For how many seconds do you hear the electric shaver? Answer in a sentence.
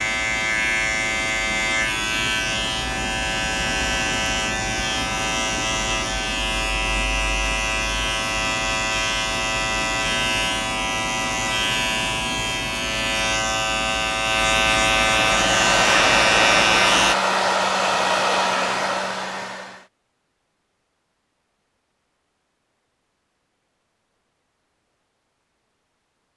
You can hear the electric shaver for 17 seconds altogether.